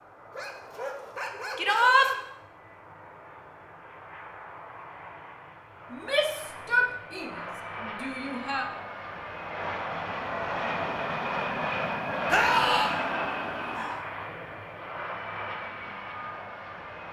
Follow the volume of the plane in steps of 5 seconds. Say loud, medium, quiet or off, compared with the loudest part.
quiet, medium, loud, medium.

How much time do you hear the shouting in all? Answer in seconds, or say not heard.
4 s.